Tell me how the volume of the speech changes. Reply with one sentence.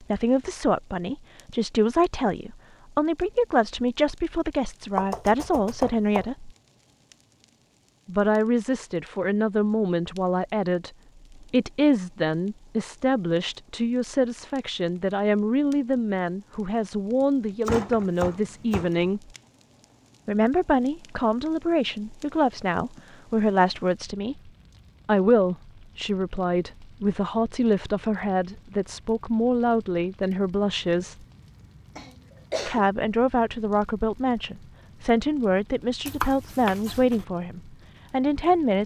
The loudness of the speech stays about the same.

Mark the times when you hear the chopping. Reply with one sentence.
You can hear the chopping from 5.0 to 6.2 s, from 17.6 to 19.1 s and from 36.0 to 37.2 s.